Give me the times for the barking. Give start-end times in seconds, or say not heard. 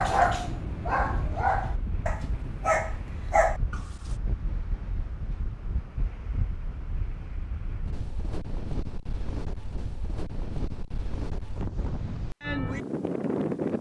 0.0-3.8.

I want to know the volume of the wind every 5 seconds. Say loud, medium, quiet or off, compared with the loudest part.
medium, medium, loud.